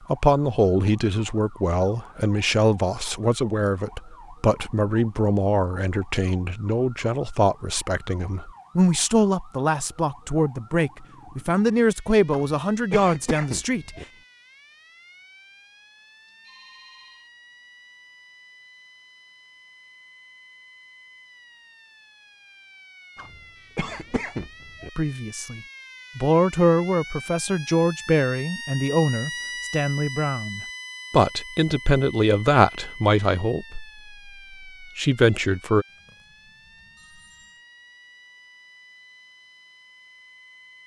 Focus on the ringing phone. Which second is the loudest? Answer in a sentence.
The volume of the ringing phone peaks at 17 seconds.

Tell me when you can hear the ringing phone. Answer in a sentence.
You can hear the ringing phone from 16.2 to 17.3 s and from 35.9 to 37.6 s.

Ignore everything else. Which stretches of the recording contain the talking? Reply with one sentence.
The talking can be heard from 0.1 to 13.9 s, from 24.9 to 33.9 s and from 34.8 to 35.9 s.